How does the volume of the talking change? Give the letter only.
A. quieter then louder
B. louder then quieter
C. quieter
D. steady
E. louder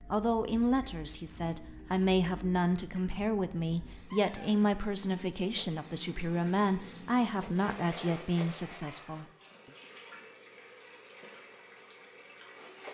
D.